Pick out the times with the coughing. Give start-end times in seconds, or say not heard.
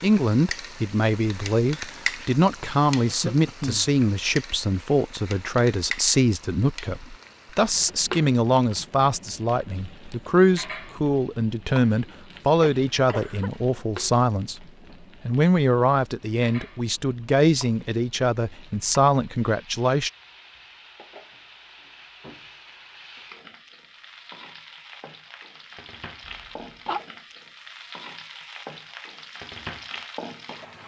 3.0-3.9, 12.6-13.5, 26.2-27.0.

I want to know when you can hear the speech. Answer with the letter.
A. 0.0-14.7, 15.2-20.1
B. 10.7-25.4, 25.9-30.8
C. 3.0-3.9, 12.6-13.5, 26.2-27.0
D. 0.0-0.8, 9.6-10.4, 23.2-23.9
A.